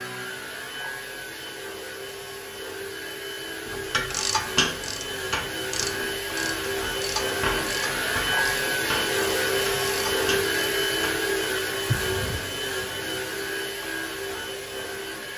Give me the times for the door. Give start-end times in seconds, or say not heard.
11.8-12.5.